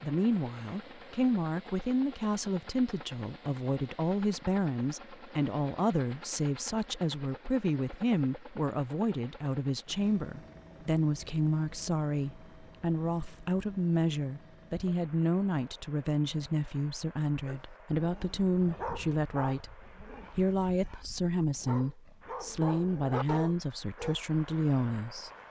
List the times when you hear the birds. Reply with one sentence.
The birds can't be heard in this clip.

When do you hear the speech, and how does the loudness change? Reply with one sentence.
You can hear the speech from 0.0 to 25.3 s, at a steady volume.